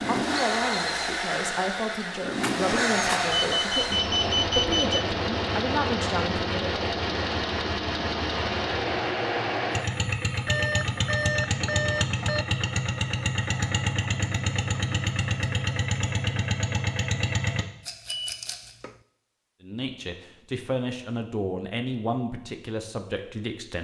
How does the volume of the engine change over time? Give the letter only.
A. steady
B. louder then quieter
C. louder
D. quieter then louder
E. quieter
A.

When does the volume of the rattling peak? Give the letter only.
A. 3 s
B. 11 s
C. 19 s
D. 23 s
A.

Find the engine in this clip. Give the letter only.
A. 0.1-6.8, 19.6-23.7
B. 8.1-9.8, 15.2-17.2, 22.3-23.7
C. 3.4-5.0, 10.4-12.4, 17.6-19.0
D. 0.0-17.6
D.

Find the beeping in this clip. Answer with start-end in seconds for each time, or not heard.
3.4-5.0, 10.4-12.4, 17.6-19.0.